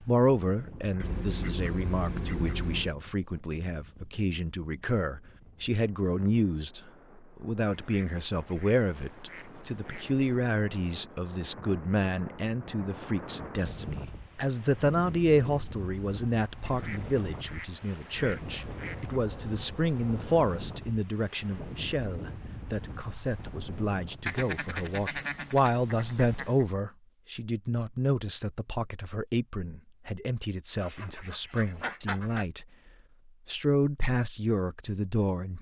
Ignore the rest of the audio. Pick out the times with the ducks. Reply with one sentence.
You can hear the ducks from 0.9 to 3.0 s, from 7.7 to 10.4 s, from 16.6 to 19.2 s, from 24.2 to 26.6 s and from 30.8 to 32.5 s.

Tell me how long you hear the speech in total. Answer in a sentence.
You can hear the speech for 35 seconds altogether.